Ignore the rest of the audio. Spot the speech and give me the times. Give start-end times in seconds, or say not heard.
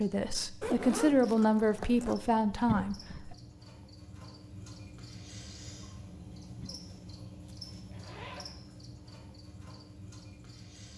0.0-3.4.